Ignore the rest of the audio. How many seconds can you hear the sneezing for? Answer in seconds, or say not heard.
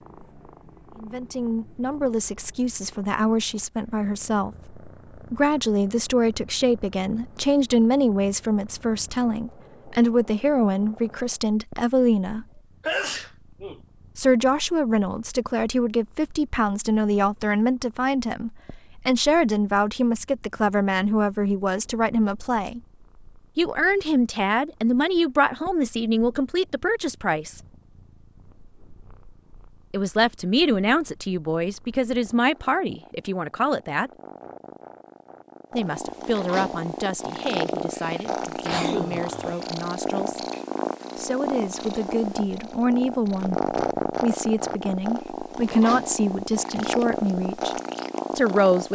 3 s.